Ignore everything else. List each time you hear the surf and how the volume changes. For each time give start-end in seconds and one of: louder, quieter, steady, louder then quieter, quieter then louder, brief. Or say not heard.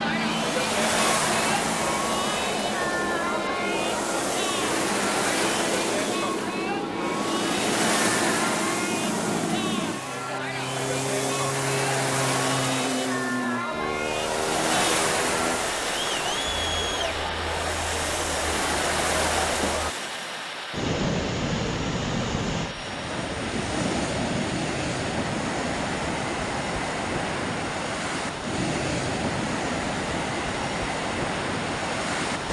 0.1-32.4 steady.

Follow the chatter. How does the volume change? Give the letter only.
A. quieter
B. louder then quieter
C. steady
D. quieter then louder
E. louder
C.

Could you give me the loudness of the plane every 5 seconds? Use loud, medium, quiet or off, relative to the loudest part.
loud, loud, loud, loud, medium, medium, medium.